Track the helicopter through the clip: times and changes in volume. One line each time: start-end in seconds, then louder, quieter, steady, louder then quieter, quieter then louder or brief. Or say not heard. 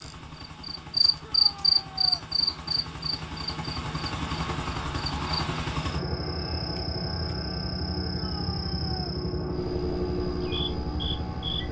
0.0-11.6 louder.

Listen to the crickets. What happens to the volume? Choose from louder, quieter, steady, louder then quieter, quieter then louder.
quieter.